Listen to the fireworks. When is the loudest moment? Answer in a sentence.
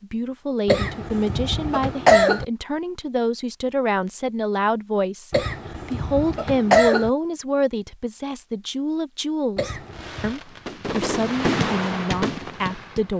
The volume of the fireworks peaks at 12 seconds.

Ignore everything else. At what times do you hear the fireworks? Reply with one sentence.
The fireworks can be heard from 9.8 to 13.1 s.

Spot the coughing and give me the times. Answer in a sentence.
You can hear the coughing from 0.7 to 2.5 s, from 5.3 to 7.1 s and from 9.6 to 10.3 s.